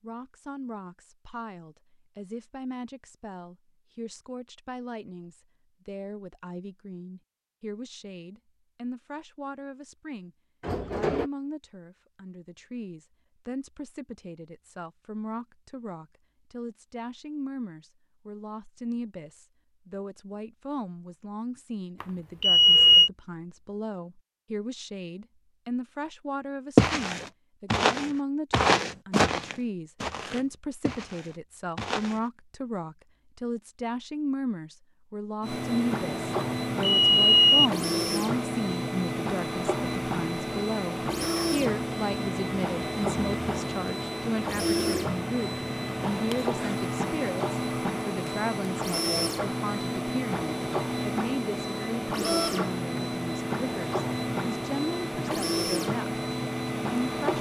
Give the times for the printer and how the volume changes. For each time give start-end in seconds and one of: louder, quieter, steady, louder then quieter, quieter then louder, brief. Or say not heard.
35.4-57.3 steady.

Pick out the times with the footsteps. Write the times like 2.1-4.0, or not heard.
26.8-32.2.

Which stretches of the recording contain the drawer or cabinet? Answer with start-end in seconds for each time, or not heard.
10.6-11.3.